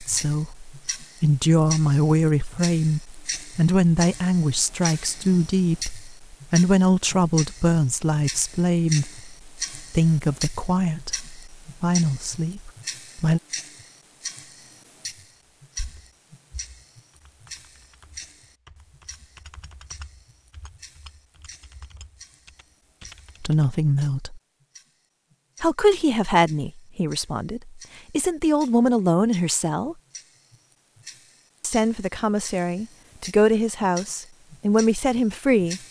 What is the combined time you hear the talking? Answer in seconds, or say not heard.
23 s.